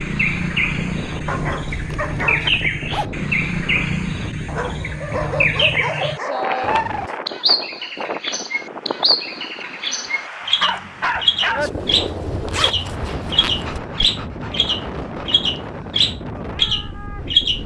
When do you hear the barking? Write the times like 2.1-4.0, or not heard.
1.2-2.5, 4.5-6.8, 10.6-11.7, 13.3-15.4.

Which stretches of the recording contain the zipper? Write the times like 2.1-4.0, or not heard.
1.7-3.1, 11.8-13.8.